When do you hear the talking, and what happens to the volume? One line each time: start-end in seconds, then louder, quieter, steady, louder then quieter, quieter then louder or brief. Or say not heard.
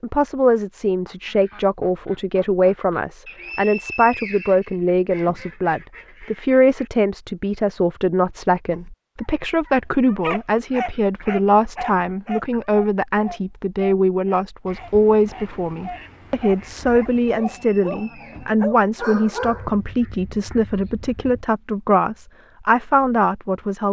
0.0-23.8 steady.